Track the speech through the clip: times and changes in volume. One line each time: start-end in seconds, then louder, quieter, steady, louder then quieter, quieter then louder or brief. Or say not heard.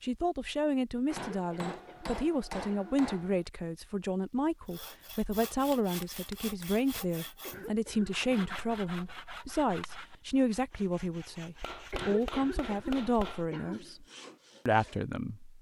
0.0-14.1 steady
14.7-15.5 brief.